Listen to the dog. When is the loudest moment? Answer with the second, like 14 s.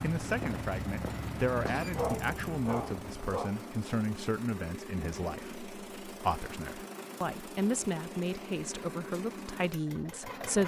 2 s.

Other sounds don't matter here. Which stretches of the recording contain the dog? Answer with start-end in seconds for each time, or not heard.
1.9-3.5.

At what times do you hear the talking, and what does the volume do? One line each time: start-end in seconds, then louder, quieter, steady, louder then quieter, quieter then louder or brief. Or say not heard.
0.0-10.6 steady.